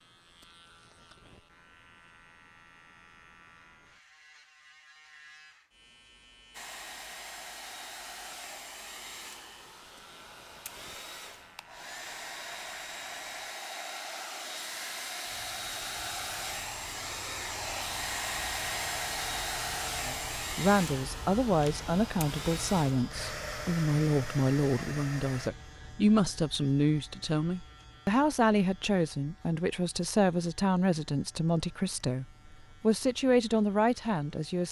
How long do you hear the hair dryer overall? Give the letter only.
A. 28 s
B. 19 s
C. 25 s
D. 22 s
B.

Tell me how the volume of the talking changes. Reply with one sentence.
The loudness of the talking stays about the same.